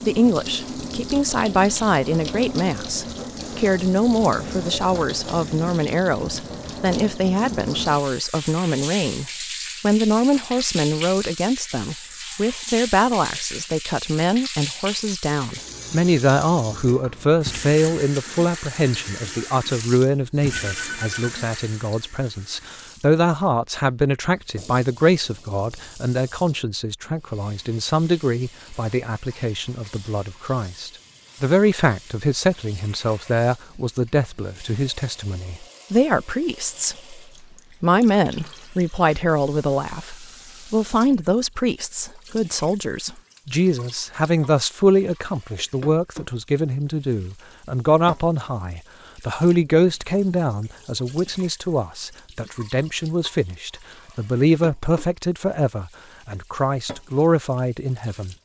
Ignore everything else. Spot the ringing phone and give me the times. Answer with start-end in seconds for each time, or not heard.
20.5-21.3.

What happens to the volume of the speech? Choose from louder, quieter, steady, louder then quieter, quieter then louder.
steady.